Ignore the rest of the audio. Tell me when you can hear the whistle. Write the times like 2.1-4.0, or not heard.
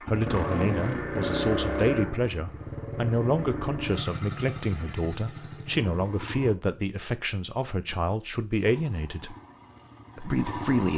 not heard.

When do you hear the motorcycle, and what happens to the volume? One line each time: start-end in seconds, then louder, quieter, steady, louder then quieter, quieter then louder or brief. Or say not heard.
0.0-6.5 quieter
8.6-10.9 brief.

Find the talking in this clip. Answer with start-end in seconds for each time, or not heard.
0.1-9.3, 10.2-10.9.